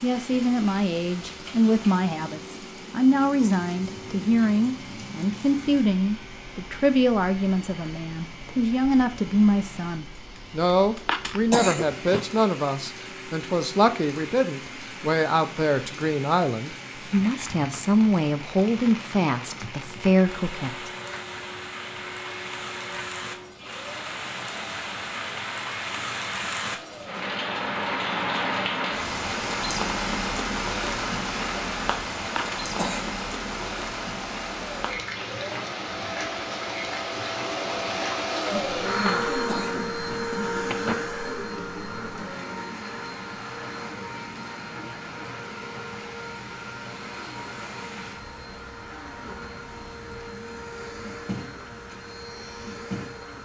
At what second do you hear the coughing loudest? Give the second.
12 s.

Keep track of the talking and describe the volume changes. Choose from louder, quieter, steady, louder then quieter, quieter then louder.
steady.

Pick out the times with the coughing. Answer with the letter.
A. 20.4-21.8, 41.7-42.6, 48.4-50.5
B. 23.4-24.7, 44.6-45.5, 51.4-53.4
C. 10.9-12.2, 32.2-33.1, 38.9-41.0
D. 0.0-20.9
C.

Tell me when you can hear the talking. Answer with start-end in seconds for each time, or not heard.
0.0-20.9.